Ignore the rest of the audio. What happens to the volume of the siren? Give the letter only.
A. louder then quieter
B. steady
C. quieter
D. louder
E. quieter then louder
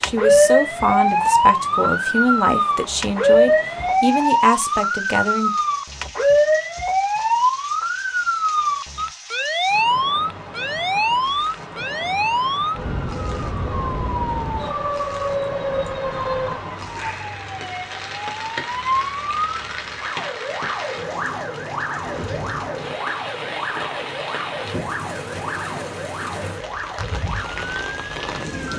C.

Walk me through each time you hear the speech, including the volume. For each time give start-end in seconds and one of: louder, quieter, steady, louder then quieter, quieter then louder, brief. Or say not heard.
0.0-5.5 steady.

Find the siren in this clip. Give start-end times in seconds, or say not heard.
0.0-28.7.